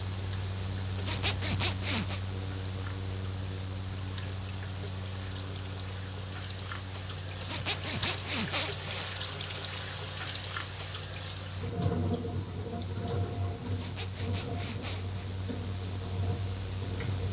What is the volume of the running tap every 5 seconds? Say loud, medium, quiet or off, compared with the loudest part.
medium, loud, loud, medium.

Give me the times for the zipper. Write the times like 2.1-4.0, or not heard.
0.9-2.2, 7.4-9.1, 13.7-15.3.